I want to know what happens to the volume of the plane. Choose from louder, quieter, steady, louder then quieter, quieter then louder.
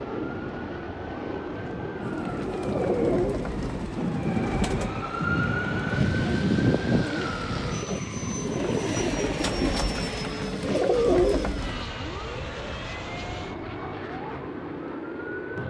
steady.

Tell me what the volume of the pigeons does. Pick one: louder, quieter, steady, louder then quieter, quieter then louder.
quieter then louder.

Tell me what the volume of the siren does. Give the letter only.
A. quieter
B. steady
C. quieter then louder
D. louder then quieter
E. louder
D.